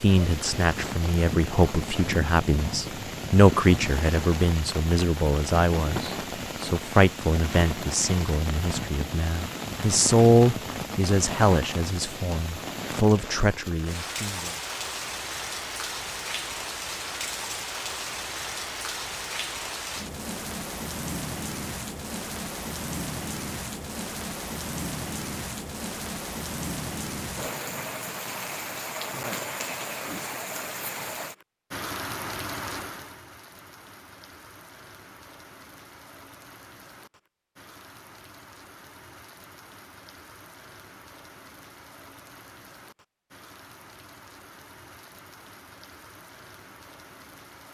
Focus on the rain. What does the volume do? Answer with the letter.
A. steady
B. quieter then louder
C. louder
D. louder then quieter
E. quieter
E.